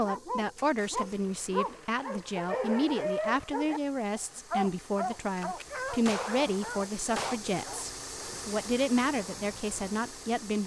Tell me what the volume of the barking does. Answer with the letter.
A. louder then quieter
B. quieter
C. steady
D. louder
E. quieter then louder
B.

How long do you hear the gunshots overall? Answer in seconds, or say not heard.
2 s.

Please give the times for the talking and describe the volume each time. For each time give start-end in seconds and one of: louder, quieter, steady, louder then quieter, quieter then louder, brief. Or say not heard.
0.0-10.6 steady.